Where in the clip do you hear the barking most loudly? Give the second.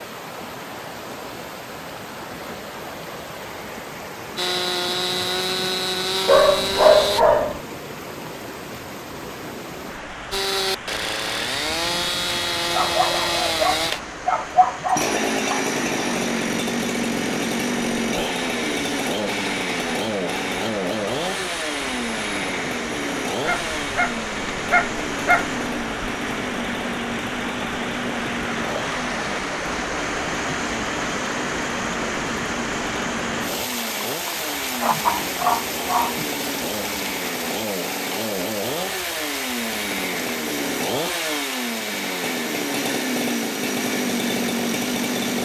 7 s.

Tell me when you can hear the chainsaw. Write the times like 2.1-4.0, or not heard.
4.3-7.2, 10.3-45.3.